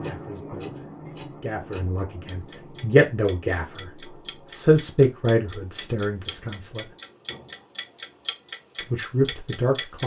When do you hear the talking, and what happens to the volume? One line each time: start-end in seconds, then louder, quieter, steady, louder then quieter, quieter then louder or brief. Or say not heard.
0.0-6.8 louder then quieter
8.8-10.0 brief.